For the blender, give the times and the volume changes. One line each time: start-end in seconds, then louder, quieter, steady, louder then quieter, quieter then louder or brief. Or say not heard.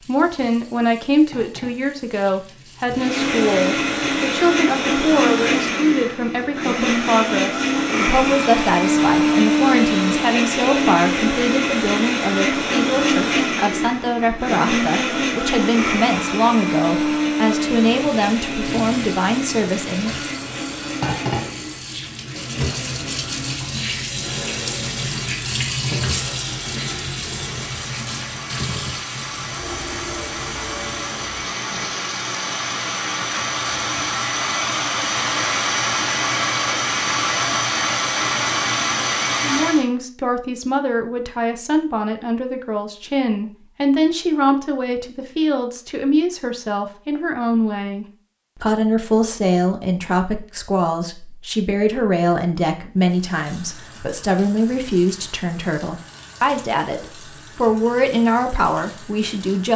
2.9-39.9 quieter then louder.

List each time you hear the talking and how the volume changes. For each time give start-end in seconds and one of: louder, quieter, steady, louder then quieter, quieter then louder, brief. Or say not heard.
0.1-20.1 steady
39.4-59.7 steady.